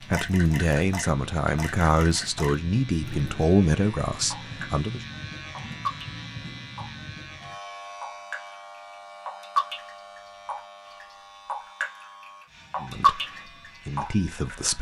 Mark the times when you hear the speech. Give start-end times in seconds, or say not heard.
0.0-5.0, 12.8-14.7.